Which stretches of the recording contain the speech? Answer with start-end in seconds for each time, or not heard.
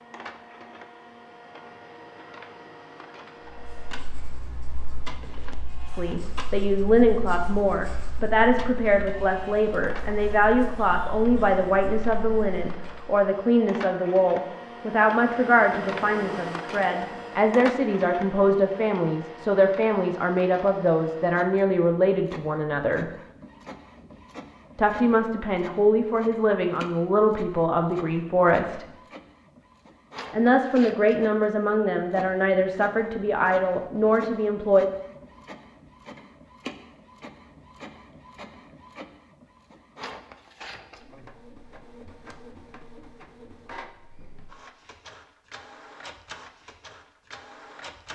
5.8-23.1, 24.8-28.9, 30.3-34.9.